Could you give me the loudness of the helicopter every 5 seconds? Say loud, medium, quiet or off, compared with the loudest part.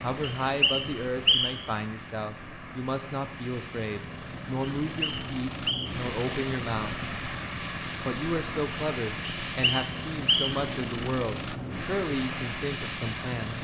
medium, loud, loud.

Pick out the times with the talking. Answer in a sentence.
You can hear the talking from 0.0 to 7.0 s and from 8.1 to 13.5 s.